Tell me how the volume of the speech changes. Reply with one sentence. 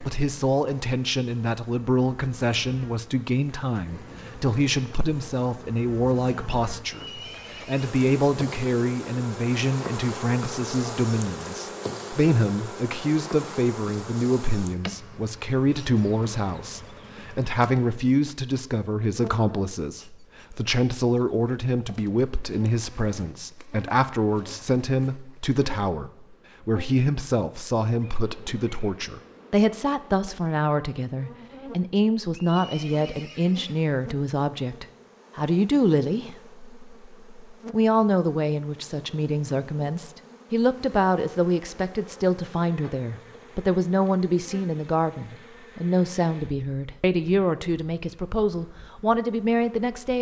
The volume of the speech stays about the same.